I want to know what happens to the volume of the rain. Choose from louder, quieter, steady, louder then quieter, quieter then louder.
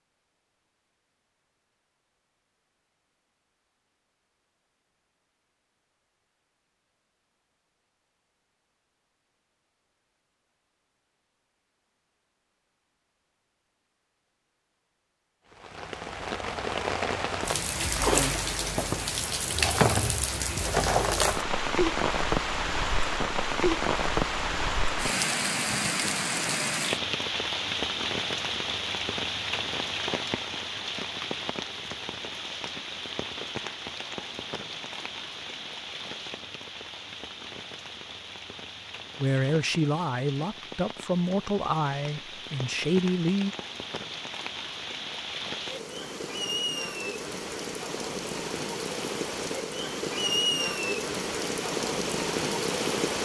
quieter then louder.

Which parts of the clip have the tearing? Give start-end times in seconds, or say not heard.
not heard.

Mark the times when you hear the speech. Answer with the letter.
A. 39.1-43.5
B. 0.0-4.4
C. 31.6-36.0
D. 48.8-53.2
A.